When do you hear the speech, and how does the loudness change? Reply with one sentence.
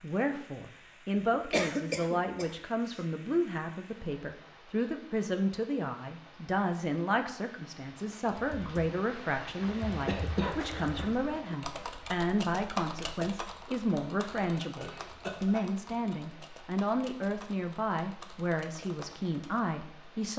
You can hear the speech from 0.0 to 20.3 s, at a steady volume.